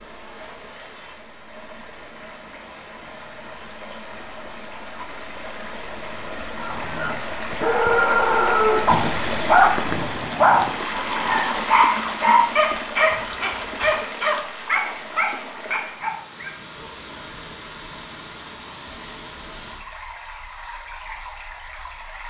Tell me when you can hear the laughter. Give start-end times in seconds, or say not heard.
not heard.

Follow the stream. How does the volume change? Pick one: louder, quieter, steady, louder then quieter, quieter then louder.
louder then quieter.